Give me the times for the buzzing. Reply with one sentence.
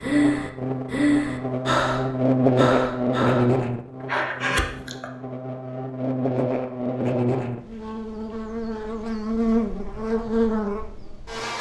The buzzing can be heard from 0.0 to 11.5 s.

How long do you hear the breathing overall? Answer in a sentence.
You can hear the breathing for 5 seconds altogether.